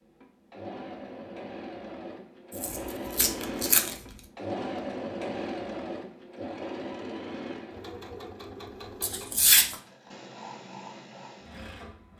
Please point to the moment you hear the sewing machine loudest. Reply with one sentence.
The volume of the sewing machine peaks at 5 seconds.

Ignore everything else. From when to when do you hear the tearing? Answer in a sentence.
You can hear the tearing from 2.5 to 4.0 s and from 9.0 to 9.8 s.